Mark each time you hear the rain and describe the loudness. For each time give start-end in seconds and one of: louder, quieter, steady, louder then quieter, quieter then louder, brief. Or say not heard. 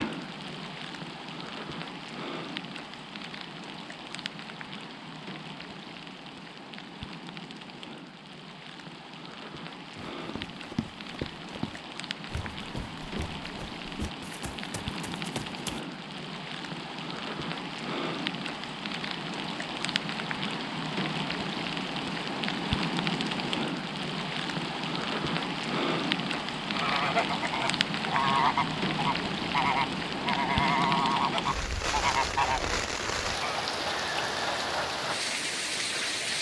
0.0-36.3 louder.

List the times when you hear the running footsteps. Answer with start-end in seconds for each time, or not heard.
10.2-15.8.